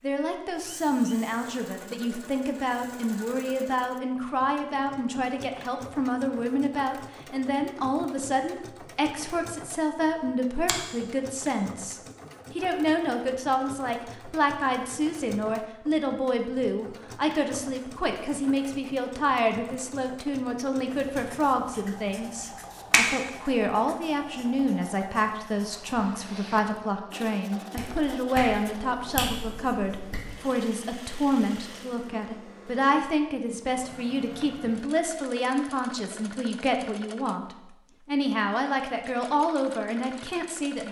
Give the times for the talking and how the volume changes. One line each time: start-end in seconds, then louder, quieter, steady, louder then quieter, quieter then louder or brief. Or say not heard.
0.0-40.8 steady.